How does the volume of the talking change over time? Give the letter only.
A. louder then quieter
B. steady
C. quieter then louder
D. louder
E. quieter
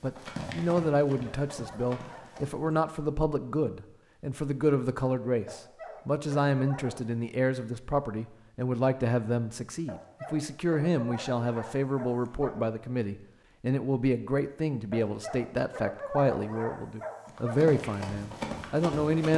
B.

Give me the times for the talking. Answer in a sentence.
The talking can be heard from 0.0 to 19.3 s.